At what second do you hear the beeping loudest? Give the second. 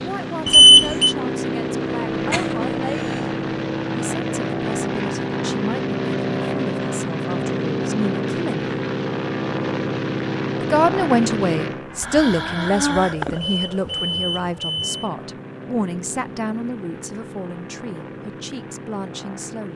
1 s.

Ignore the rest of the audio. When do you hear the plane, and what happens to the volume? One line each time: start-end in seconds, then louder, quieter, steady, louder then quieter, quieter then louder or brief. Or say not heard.
0.0-19.7 quieter.